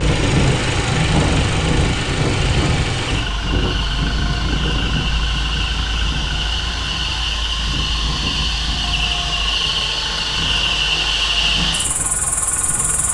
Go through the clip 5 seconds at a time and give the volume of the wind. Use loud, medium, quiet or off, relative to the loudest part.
loud, medium, quiet.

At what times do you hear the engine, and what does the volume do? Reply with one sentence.
The engine can be heard from 0.0 to 13.1 s, getting quieter.